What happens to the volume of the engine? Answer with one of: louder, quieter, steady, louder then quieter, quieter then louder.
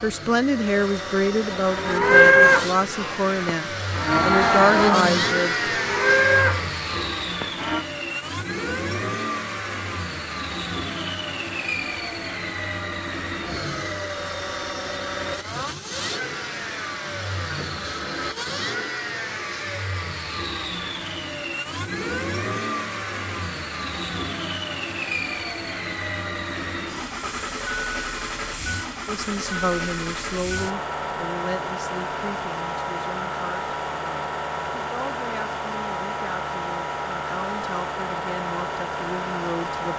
steady.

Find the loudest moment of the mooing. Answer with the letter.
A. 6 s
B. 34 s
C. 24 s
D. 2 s
D.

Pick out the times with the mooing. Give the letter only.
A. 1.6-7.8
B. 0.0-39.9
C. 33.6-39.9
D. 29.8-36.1
A.